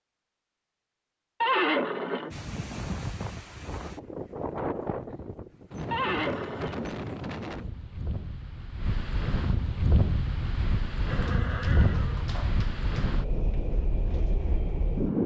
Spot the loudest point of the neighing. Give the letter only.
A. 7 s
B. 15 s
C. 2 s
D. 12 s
C.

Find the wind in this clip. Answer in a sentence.
You can hear the wind from 2.3 to 15.2 s.